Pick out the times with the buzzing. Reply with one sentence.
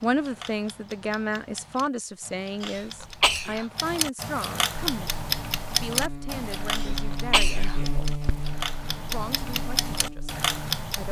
The buzzing can be heard from 5.0 to 10.8 s.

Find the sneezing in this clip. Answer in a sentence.
The sneezing can be heard from 2.6 to 3.6 s and from 6.7 to 8.4 s.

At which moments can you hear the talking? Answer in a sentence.
The talking can be heard from 0.0 to 8.2 s and from 9.1 to 11.0 s.